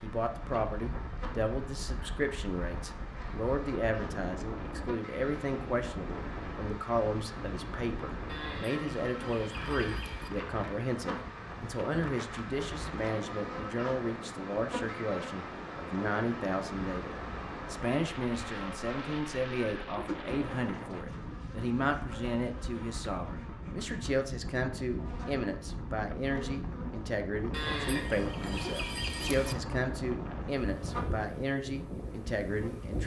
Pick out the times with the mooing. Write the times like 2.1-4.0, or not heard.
8.2-10.3, 27.5-29.6.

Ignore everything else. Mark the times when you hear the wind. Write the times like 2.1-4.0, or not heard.
0.1-33.0.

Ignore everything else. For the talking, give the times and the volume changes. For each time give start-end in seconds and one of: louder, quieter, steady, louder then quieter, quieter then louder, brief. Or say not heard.
0.0-33.0 steady.